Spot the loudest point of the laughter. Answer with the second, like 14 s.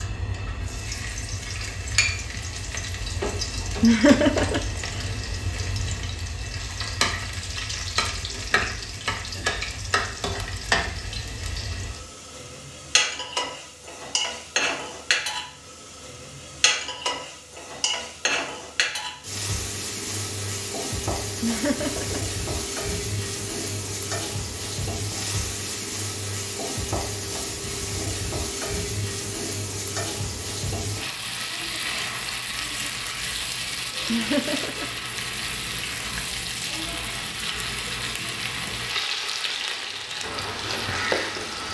4 s.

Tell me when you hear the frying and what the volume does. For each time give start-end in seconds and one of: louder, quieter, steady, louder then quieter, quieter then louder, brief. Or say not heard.
0.0-41.7 steady.